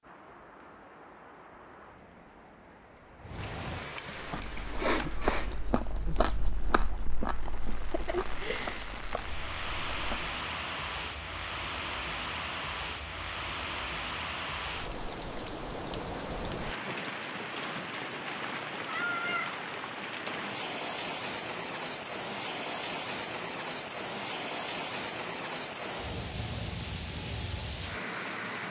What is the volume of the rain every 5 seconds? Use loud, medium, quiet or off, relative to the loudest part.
medium, medium, loud, loud, loud, loud.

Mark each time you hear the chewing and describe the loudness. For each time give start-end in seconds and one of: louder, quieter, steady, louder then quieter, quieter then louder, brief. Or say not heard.
4.2-10.3 quieter.